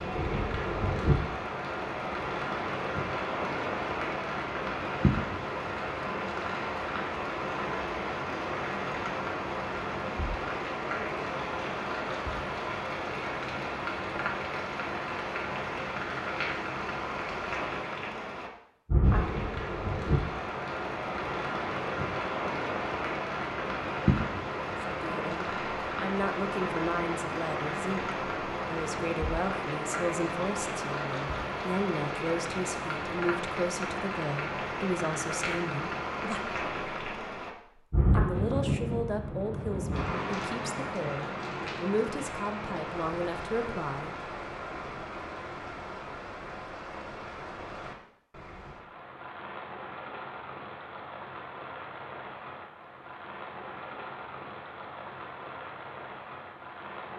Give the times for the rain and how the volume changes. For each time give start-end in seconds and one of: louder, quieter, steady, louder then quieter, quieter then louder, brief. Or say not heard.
0.0-57.1 quieter.